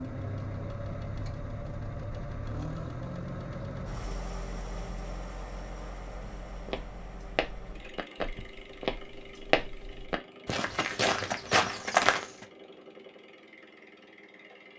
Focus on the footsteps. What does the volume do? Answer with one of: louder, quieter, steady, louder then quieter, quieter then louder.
louder.